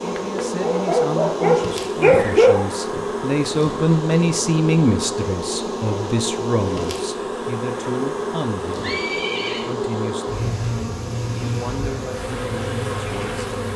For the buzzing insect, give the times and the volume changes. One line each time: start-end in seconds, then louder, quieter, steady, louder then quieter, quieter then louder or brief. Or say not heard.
0.0-13.7 steady.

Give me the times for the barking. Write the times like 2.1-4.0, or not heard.
0.0-2.7.